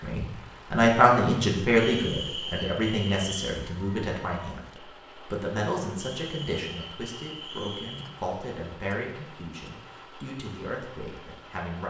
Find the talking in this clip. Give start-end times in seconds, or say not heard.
0.0-11.8.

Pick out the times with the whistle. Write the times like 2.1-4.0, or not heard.
1.8-3.5, 6.0-8.1.